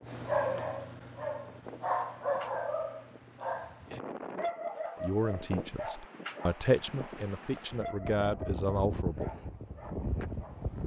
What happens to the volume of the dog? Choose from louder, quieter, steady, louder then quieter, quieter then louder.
quieter.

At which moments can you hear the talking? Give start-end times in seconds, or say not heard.
5.0-9.3.